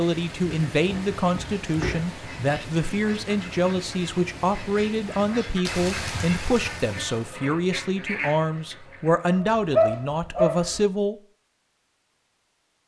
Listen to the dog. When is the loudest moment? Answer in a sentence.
The loudest moment of the dog is at 10 seconds.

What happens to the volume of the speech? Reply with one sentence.
The volume of the speech stays about the same.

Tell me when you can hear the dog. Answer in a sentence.
You can hear the dog from 0.5 to 2.1 s and from 9.3 to 10.8 s.